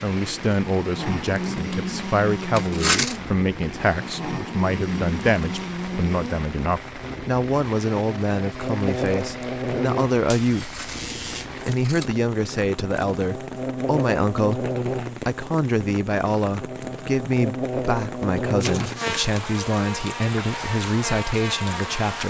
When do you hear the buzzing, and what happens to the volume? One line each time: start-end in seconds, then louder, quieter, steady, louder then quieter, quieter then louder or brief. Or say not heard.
0.1-22.2 steady.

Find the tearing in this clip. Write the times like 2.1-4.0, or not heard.
2.5-3.2, 10.6-12.1, 18.6-19.4.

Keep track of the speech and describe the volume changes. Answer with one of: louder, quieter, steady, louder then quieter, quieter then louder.
steady.